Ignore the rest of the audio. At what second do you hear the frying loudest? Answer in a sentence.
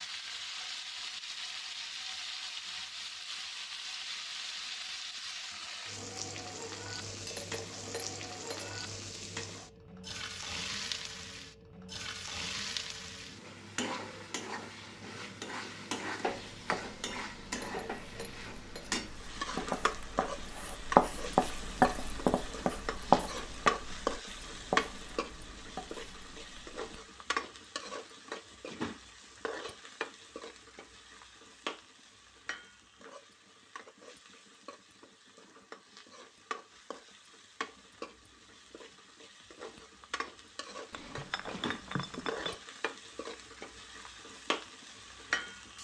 The volume of the frying peaks at 24 seconds.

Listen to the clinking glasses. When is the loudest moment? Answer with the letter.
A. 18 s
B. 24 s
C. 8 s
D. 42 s
D.